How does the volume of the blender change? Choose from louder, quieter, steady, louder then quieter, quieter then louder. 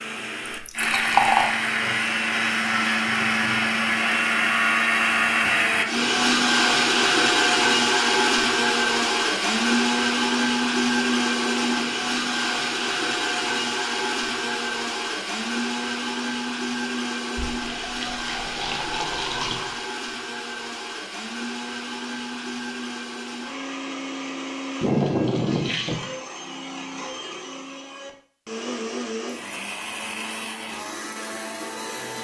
quieter.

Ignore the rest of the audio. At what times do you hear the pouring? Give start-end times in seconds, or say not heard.
0.5-1.6, 17.4-19.8, 24.8-26.1.